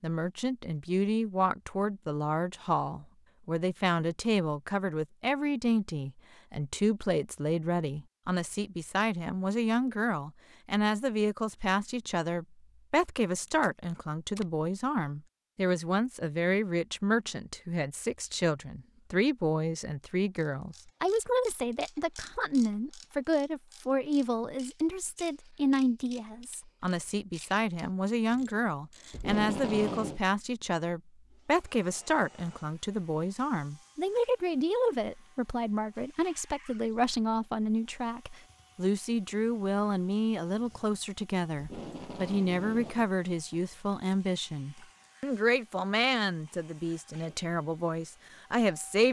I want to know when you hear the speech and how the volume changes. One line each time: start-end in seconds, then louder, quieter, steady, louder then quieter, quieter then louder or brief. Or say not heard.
0.0-49.0 steady.